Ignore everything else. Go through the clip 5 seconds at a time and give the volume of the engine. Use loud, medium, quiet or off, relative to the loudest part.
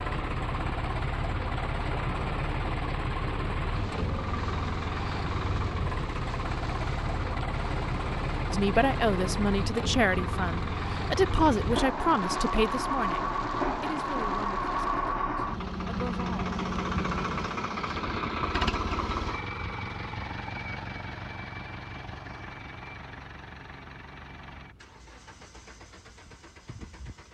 loud, loud, loud, loud, medium, quiet.